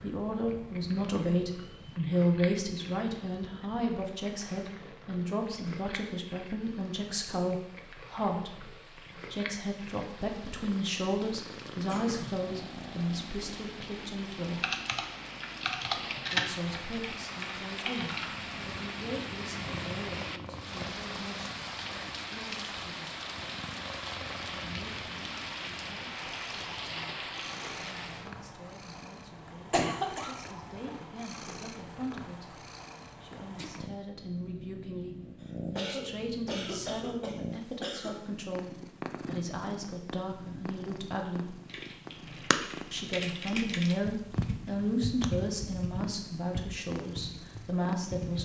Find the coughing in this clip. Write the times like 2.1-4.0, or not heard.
11.8-12.3, 29.7-30.3, 35.4-38.1.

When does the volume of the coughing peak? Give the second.
30 s.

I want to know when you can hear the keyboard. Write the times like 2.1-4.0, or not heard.
14.6-18.3, 41.6-48.4.